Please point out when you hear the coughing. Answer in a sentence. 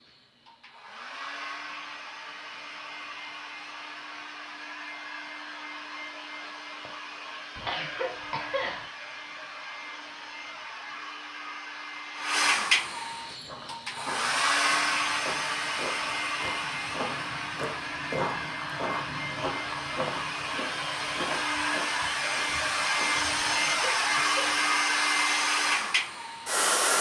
The coughing can be heard from 7.5 to 8.8 s and from 23.4 to 24.7 s.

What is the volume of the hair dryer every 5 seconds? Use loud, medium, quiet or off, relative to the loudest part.
quiet, quiet, loud, medium, loud, loud.